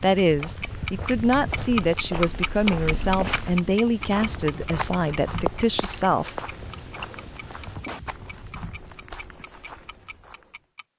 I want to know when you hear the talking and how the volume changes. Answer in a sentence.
The talking can be heard from 0.0 to 6.3 s, at a steady volume.